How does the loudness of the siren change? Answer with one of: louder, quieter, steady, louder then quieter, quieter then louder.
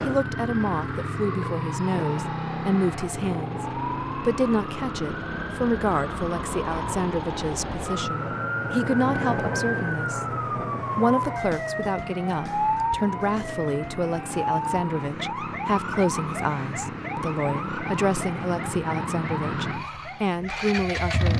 louder then quieter.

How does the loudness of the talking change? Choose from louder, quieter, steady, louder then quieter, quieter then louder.
steady.